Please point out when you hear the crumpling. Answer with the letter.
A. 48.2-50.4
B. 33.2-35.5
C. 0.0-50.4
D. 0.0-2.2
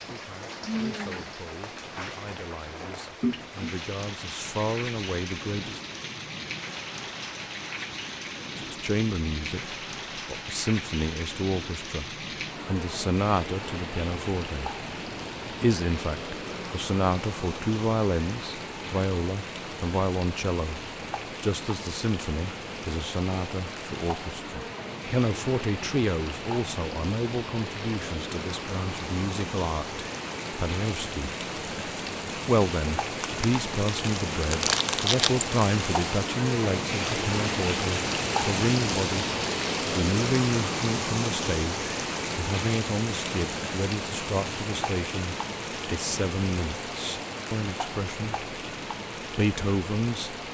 B.